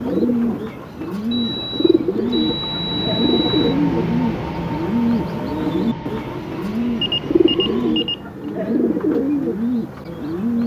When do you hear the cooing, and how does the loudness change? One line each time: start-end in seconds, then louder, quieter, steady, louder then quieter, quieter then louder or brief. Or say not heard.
0.0-10.6 steady.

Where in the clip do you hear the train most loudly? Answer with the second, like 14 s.
4 s.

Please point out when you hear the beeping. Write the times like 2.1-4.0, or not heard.
1.3-3.5, 7.0-8.2.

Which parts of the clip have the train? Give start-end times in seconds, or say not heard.
2.2-8.0.